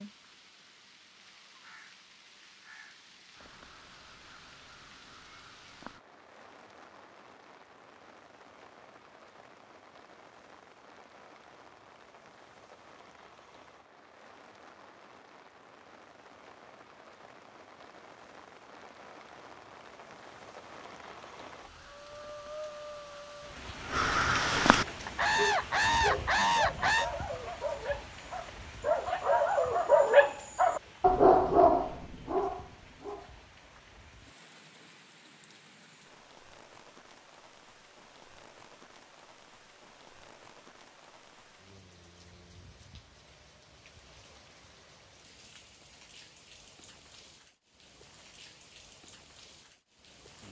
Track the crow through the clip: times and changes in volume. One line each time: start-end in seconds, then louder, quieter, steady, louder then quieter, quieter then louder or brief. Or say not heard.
3.3-6.0 brief
21.6-27.1 louder.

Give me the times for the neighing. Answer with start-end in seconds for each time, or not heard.
not heard.